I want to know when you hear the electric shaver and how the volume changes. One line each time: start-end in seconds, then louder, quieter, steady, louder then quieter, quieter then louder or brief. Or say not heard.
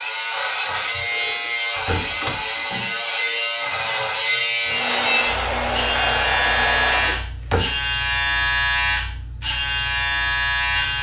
0.0-10.9 steady.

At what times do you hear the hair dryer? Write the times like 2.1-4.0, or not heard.
4.6-7.2.